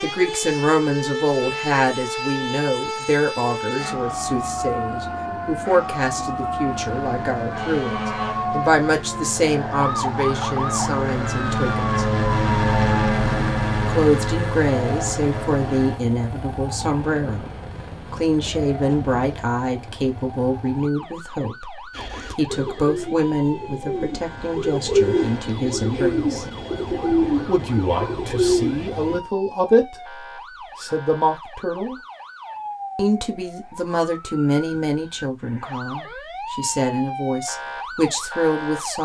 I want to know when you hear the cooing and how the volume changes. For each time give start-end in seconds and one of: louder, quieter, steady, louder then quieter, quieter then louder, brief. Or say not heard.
21.9-29.2 louder.